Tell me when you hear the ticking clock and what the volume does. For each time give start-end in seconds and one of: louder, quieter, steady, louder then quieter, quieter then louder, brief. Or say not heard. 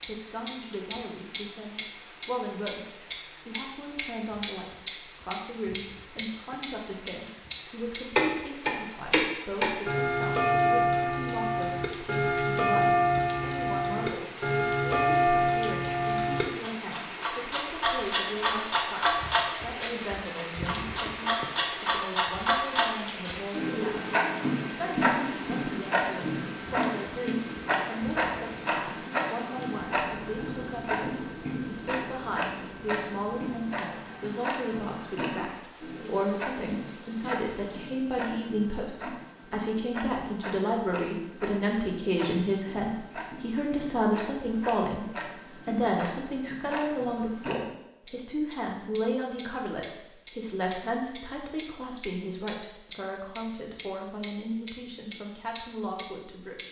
0.0-56.6 quieter then louder.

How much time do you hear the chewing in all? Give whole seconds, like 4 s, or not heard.
not heard.